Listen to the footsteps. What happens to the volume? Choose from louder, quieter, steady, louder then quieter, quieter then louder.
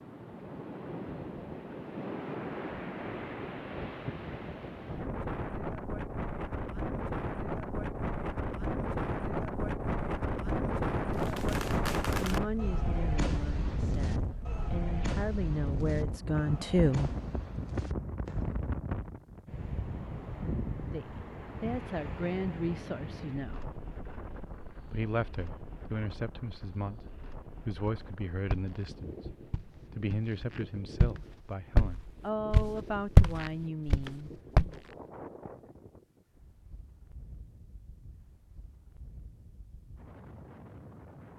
louder then quieter.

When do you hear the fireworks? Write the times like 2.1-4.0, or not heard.
11.1-18.6.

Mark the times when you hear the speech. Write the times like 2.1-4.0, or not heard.
12.2-17.1, 20.9-23.8, 24.9-34.3.